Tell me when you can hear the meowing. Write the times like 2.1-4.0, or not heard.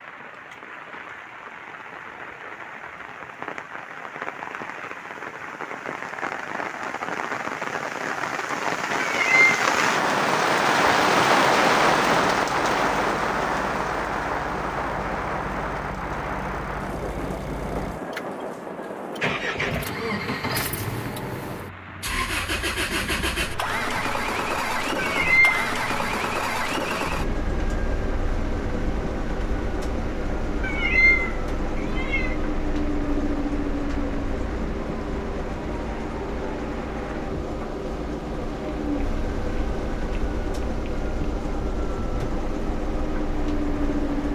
9.1-9.6, 25.0-25.6, 30.6-32.4.